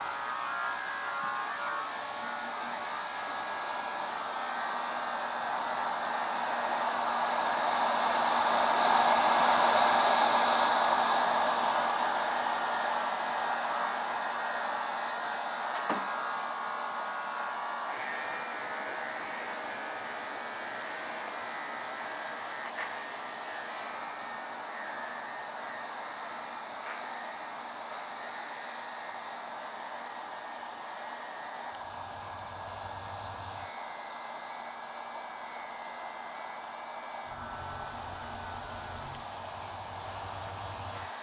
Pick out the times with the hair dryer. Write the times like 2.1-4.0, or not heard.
0.0-41.1.